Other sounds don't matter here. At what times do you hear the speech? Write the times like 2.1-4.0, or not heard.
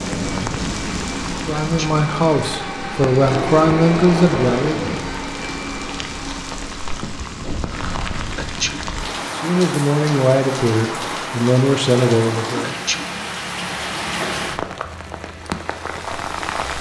1.4-5.0, 9.3-12.7.